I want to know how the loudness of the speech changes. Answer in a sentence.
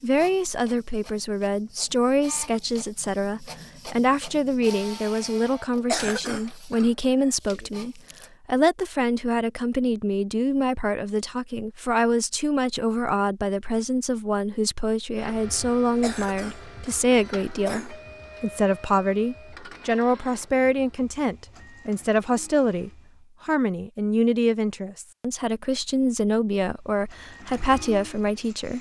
The loudness of the speech stays about the same.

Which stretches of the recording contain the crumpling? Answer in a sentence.
The crumpling can be heard from 7.9 to 8.3 s.